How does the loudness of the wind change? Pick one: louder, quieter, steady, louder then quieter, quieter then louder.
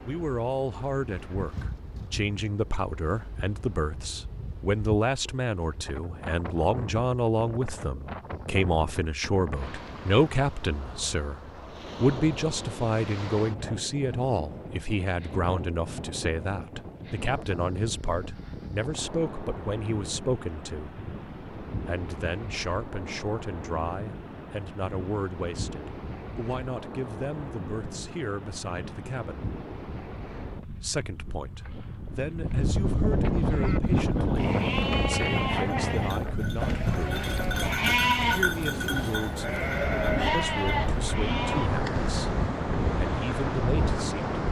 louder.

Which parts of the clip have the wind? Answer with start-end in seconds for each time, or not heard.
0.0-44.4.